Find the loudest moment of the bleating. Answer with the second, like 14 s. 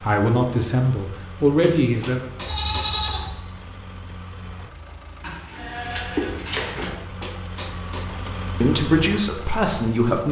3 s.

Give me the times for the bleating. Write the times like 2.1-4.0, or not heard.
2.5-3.3, 5.2-7.0.